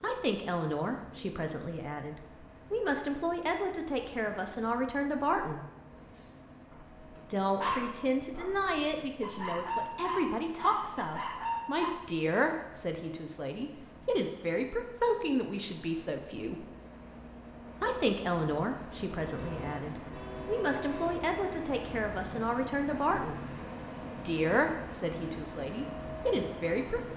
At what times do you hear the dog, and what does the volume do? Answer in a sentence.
You can hear the dog from 6.7 to 11.9 s, getting quieter then louder.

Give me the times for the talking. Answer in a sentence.
The talking can be heard from 0.0 to 5.7 s, from 7.3 to 16.6 s, from 17.8 to 23.4 s and from 24.2 to 27.1 s.